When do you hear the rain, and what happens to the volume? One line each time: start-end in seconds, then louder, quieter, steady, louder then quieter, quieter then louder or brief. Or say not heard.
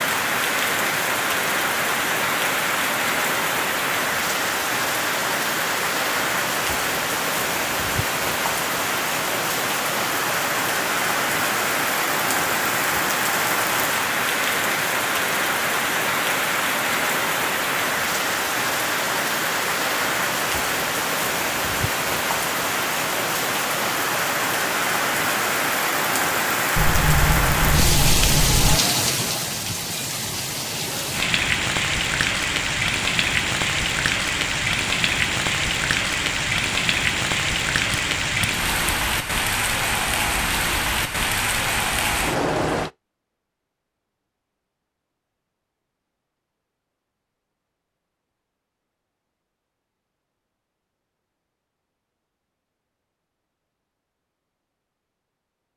0.0-42.9 steady.